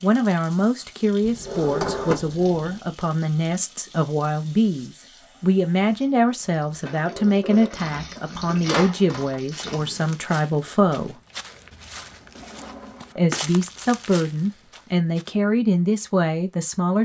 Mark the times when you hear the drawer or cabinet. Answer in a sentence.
The drawer or cabinet can be heard from 1.2 to 2.9 s, from 6.8 to 9.4 s and from 12.3 to 13.4 s.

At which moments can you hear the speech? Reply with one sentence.
You can hear the speech from 0.0 to 11.2 s and from 13.2 to 17.0 s.